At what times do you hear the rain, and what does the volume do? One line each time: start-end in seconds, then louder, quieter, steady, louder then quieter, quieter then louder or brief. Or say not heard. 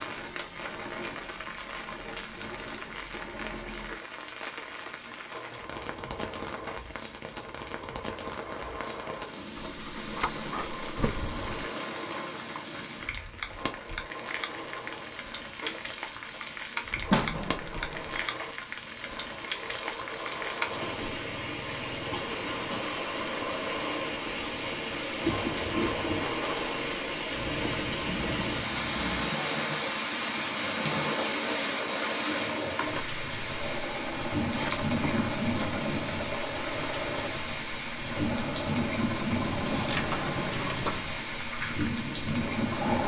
0.0-43.0 louder.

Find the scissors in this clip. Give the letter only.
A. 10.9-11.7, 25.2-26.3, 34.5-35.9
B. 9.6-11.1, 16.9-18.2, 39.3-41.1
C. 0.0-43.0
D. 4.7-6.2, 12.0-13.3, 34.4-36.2
B.